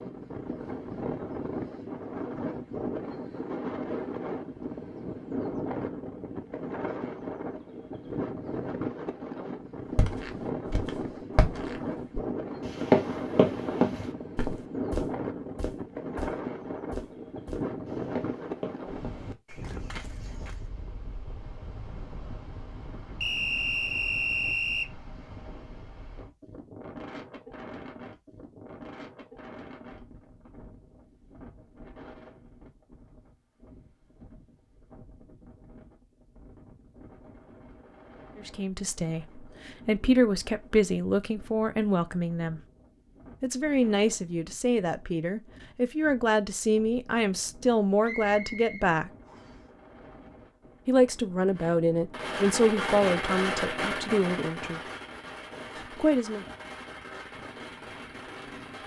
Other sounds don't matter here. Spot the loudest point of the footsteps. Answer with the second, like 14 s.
13 s.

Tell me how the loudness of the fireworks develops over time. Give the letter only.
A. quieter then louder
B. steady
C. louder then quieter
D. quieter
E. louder
D.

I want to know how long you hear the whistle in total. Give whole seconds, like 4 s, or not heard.
3 s.